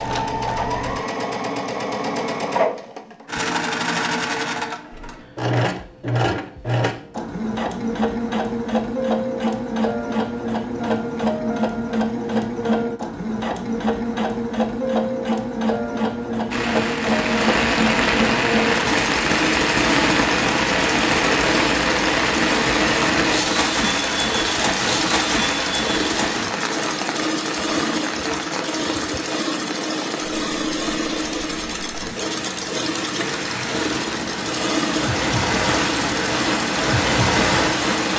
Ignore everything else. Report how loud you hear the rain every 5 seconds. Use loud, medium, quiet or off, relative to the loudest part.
off, off, off, loud, loud, medium, medium, loud.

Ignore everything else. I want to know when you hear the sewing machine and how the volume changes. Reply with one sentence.
The sewing machine can be heard from 0.0 to 38.1 s, at a steady volume.